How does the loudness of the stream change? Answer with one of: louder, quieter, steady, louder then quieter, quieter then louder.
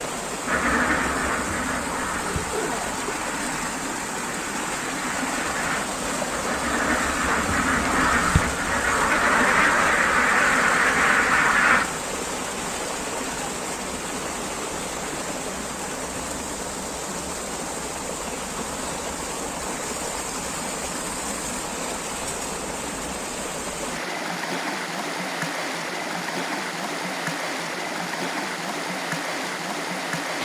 steady.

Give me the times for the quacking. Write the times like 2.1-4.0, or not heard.
0.5-12.0.